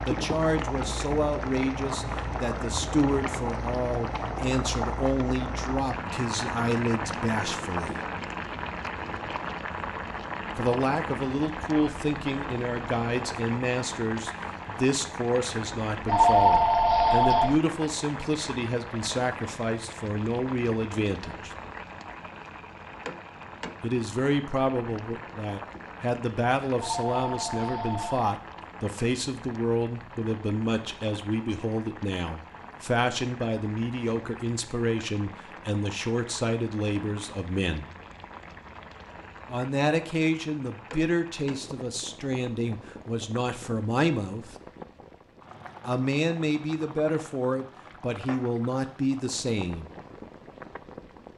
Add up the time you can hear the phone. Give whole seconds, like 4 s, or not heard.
3 s.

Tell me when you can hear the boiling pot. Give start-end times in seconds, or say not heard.
0.0-51.3.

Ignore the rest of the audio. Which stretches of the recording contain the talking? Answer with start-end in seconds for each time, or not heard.
0.1-8.0, 10.6-21.5, 23.8-37.9, 39.5-44.5, 45.9-49.9.